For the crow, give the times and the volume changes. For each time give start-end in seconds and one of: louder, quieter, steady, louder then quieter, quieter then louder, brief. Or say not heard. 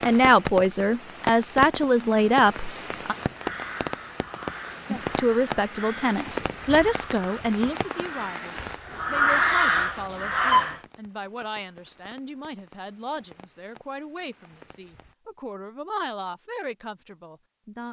3.3-10.8 louder.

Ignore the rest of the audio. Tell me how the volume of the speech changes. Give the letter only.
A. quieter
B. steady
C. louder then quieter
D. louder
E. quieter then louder
A.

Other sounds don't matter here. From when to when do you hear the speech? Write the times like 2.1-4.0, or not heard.
0.0-3.1, 4.9-17.8.